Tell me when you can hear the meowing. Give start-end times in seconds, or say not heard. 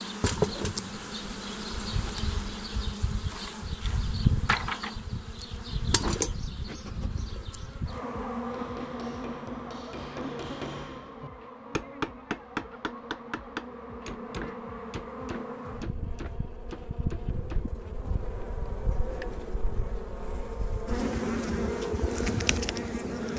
not heard.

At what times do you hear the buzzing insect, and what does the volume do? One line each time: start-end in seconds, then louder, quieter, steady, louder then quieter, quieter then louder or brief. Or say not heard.
0.0-23.3 quieter then louder.